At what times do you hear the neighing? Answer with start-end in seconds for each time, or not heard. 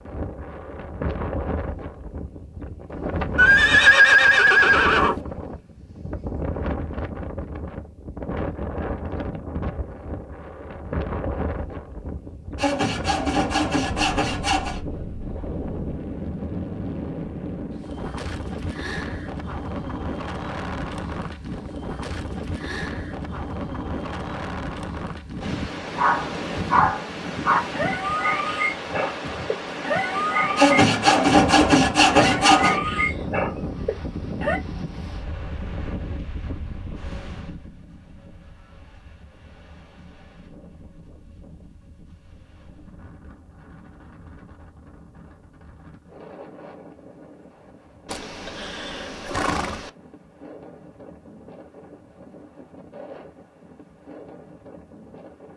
3.4-5.2, 48.1-49.9.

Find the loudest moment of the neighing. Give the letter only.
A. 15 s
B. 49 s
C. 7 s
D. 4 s
D.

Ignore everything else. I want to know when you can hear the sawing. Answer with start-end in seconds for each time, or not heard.
12.6-14.8, 30.6-32.8.